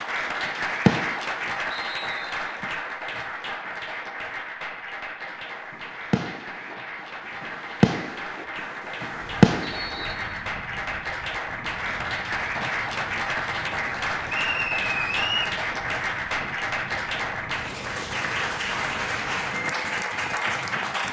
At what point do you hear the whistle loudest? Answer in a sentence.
The loudest moment of the whistle is at 15 seconds.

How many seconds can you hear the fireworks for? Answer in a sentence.
You can hear the fireworks for 5 seconds altogether.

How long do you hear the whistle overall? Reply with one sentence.
The whistle can be heard for 3 seconds in total.